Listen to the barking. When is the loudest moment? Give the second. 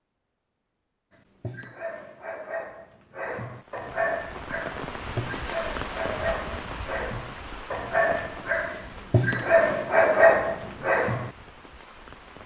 10 s.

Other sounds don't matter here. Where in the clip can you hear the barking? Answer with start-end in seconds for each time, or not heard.
1.1-11.3.